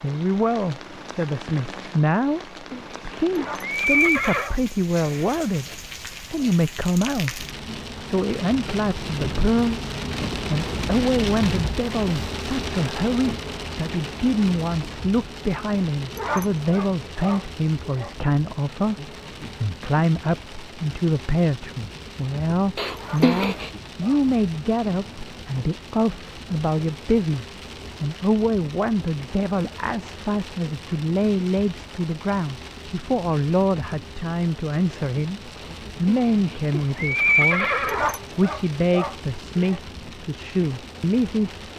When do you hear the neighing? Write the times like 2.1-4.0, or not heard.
2.2-4.5, 22.8-23.7, 35.6-38.0.